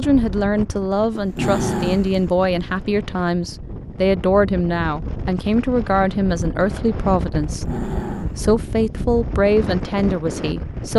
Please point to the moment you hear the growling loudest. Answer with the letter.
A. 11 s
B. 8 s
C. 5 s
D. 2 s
D.